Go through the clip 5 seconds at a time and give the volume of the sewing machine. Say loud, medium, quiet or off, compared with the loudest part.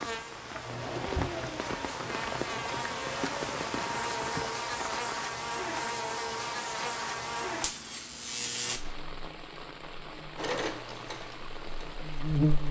loud, off, loud.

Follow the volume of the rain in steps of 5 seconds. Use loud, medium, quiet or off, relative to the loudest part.
loud, medium, medium.